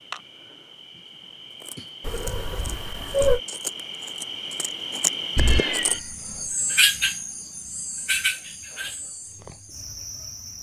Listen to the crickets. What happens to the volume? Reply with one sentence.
The loudness of the crickets goes up, then down.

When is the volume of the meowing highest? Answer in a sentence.
The loudest moment of the meowing is at 3 seconds.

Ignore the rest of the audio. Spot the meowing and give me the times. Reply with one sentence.
The meowing can be heard from 2.0 to 3.4 s and from 5.3 to 6.3 s.